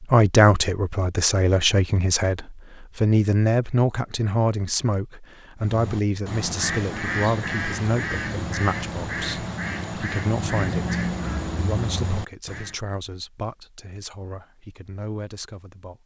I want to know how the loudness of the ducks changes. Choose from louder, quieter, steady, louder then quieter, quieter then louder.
steady.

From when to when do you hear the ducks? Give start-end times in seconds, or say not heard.
5.6-12.8.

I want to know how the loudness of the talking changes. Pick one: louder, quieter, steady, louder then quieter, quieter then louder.
quieter.